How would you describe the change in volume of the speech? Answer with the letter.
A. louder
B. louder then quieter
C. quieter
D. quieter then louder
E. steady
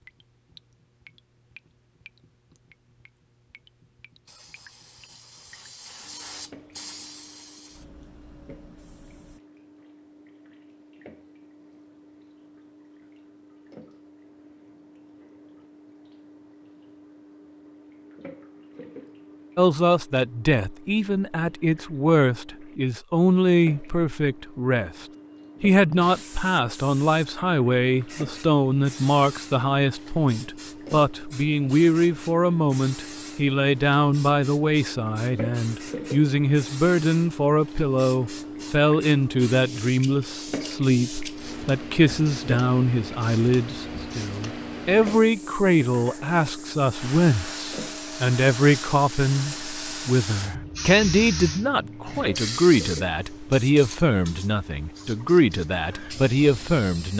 E.